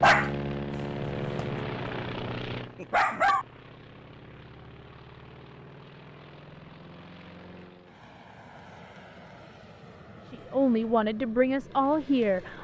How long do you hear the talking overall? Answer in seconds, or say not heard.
2 s.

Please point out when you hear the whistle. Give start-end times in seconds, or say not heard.
not heard.